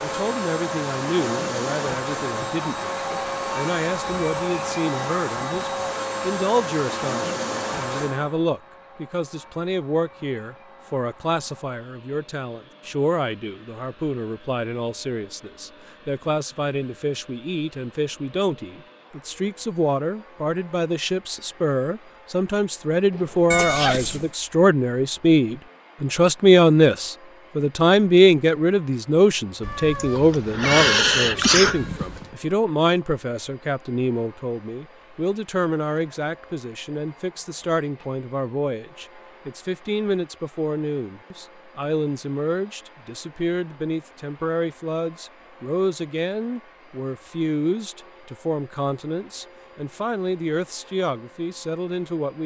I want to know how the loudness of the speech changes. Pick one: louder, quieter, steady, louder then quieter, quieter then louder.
louder then quieter.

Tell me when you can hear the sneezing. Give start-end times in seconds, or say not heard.
23.1-24.1, 30.1-31.8.